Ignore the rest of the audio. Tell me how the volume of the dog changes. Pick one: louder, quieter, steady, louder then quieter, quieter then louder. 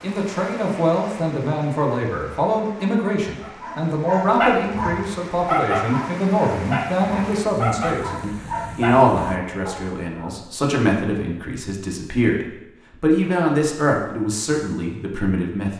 quieter.